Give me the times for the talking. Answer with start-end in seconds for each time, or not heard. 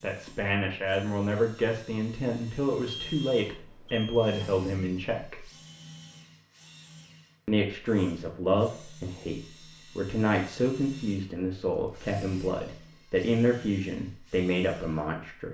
0.0-5.5, 7.5-15.4.